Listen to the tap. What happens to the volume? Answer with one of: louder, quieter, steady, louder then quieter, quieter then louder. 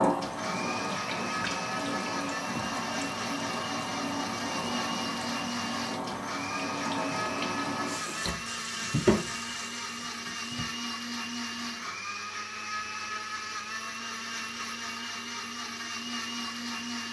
steady.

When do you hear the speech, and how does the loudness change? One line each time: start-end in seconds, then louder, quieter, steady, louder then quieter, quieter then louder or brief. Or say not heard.
not heard.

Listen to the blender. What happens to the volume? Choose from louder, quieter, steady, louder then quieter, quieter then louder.
steady.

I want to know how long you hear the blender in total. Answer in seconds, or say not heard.
17 s.